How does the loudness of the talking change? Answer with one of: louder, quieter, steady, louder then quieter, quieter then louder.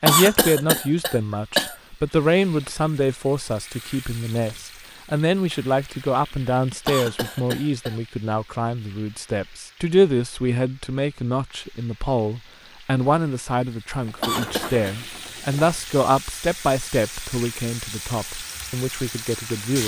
steady.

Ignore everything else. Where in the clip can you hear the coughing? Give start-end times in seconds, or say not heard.
0.1-1.8, 6.8-8.0, 14.2-14.9.